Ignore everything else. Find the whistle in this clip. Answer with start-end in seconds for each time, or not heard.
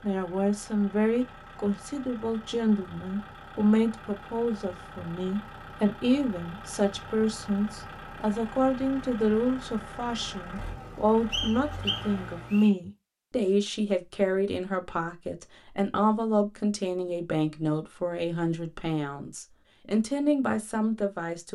11.3-12.7.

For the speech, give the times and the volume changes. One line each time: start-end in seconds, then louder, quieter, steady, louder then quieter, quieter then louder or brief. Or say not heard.
0.0-21.5 steady.